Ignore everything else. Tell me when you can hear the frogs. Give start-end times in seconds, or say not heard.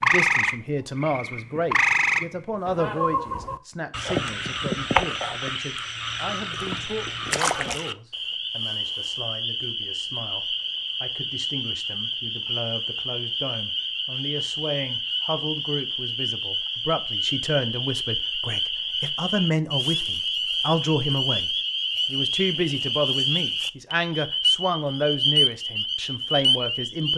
0.0-27.1.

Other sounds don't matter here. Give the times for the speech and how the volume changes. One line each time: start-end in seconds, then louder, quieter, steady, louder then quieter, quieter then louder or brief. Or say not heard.
0.0-27.1 quieter then louder.